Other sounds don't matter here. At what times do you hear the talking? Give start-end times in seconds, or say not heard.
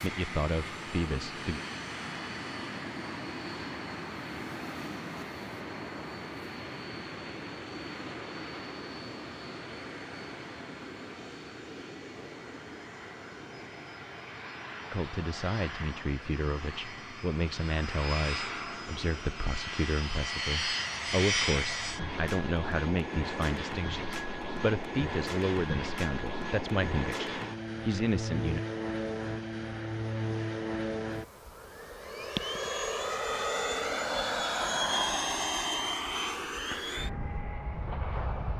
0.0-1.6, 14.9-28.6.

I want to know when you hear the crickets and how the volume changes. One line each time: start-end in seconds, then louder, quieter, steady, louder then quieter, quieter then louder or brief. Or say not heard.
not heard.